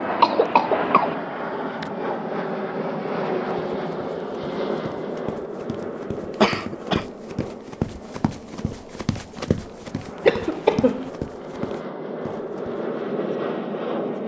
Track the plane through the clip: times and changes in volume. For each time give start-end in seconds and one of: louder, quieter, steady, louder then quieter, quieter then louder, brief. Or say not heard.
0.0-14.2 quieter then louder.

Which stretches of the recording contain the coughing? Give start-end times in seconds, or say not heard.
0.1-1.1, 6.3-7.0, 10.2-11.1.